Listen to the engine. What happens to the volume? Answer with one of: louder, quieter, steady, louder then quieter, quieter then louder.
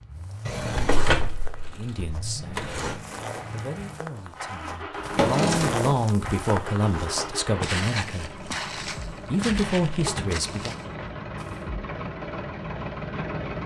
louder.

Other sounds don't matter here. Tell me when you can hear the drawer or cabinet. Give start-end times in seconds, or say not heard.
0.5-3.0, 4.9-6.0, 9.4-10.3.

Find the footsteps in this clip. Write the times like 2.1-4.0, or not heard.
0.1-11.7.